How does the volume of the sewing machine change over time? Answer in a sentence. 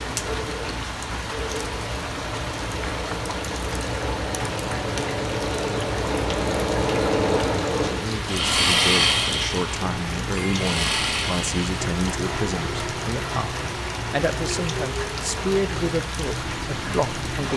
The loudness of the sewing machine goes up, then down.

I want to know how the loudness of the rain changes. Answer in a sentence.
The loudness of the rain stays about the same.